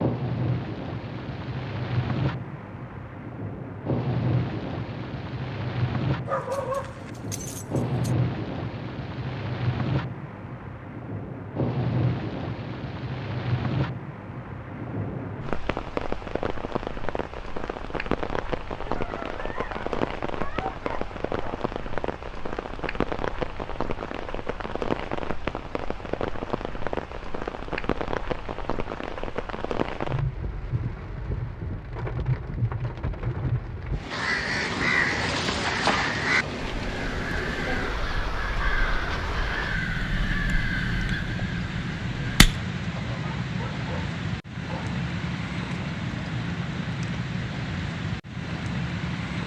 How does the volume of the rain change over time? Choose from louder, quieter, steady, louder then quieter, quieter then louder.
steady.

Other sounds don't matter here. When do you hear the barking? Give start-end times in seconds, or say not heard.
6.2-8.1, 18.9-21.6, 43.0-45.0.